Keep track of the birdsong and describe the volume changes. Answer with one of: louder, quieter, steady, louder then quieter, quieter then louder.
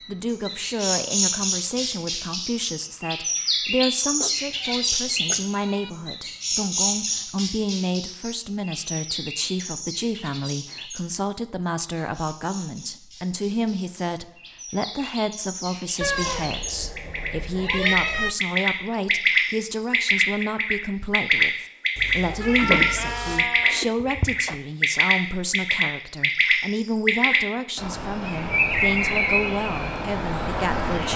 quieter then louder.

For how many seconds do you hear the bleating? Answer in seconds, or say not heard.
4 s.